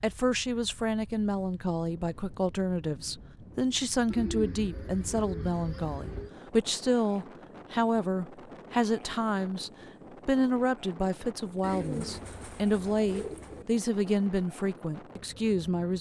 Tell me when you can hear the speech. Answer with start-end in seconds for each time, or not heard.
0.0-15.9.